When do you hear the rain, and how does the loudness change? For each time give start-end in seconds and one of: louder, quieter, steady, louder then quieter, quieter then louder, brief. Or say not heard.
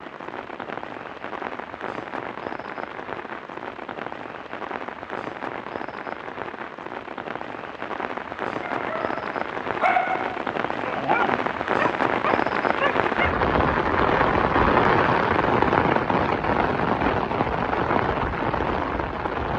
0.0-19.5 louder.